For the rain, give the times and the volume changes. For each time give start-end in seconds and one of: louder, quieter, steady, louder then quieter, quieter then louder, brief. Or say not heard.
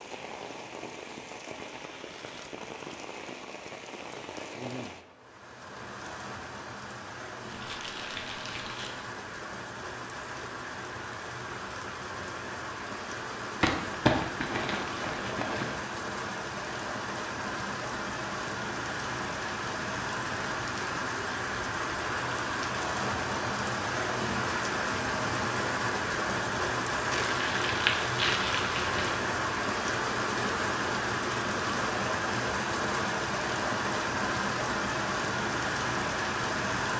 0.0-36.9 louder.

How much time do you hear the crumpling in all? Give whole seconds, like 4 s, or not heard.
6 s.